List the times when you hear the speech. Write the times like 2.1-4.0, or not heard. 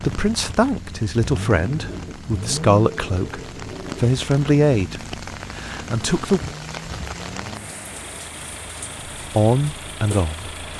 0.0-6.4, 9.3-10.5.